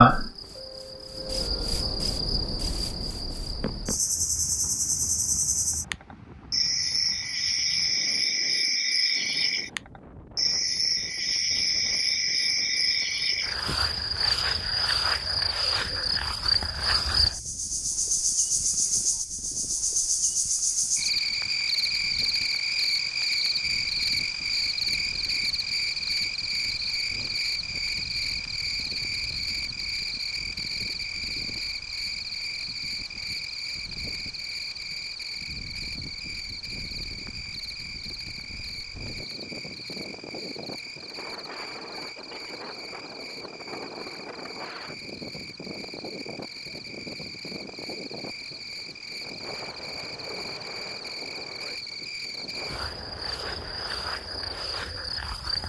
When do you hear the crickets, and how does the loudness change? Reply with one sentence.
You can hear the crickets from 0.0 to 55.6 s, getting quieter.